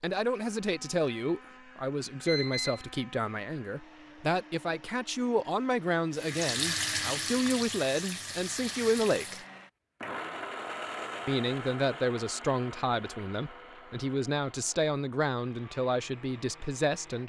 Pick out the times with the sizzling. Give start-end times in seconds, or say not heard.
6.1-9.4.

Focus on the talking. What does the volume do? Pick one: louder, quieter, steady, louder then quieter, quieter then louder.
steady.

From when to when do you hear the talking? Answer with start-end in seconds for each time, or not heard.
0.0-9.4, 11.2-17.2.